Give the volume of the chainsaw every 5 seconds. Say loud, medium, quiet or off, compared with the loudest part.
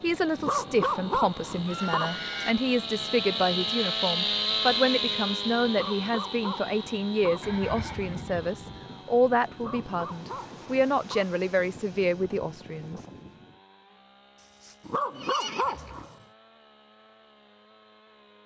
loud, medium, quiet, quiet.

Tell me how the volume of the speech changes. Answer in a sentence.
The volume of the speech stays about the same.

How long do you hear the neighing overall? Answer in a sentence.
You can hear the neighing for 4 seconds altogether.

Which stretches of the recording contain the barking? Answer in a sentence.
The barking can be heard from 0.3 to 2.1 s, from 5.7 to 7.5 s, from 9.6 to 11.3 s and from 14.8 to 16.1 s.